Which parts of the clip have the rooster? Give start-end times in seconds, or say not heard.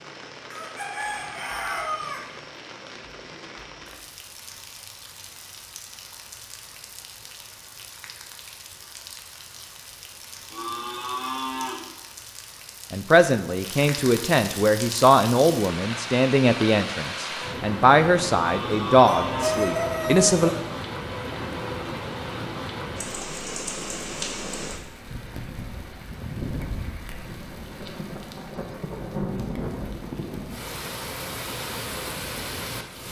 0.5-2.2, 19.1-20.5.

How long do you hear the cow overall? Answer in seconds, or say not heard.
3 s.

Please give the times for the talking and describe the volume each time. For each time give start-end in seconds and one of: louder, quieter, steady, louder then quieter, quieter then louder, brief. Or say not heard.
12.9-20.5 steady.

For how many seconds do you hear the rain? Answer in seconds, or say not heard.
33 s.